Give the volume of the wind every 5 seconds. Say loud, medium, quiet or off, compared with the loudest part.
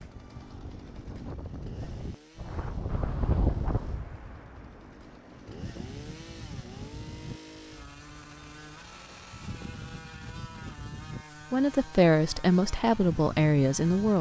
loud, medium, medium.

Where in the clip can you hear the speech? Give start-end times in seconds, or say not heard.
11.5-14.1.